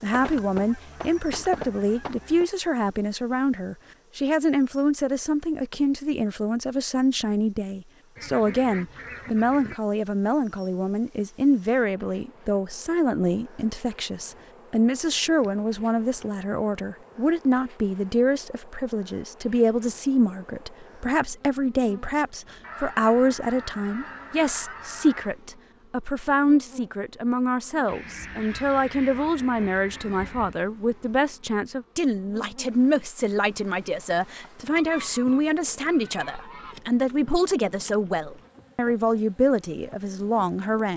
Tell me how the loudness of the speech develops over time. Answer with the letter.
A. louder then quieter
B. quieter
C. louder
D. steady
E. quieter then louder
D.